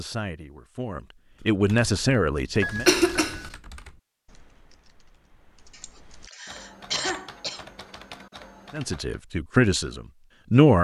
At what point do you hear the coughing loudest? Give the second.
3 s.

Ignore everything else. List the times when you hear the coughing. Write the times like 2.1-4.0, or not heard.
2.6-3.5, 5.7-7.7.